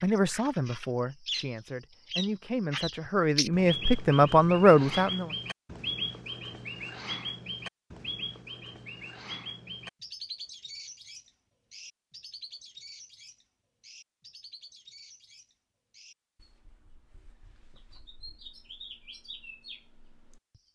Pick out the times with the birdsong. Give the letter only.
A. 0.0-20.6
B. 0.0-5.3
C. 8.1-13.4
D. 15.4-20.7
A.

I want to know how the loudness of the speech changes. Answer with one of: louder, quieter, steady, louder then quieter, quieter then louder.
quieter then louder.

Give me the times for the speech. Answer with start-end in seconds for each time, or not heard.
0.0-5.3.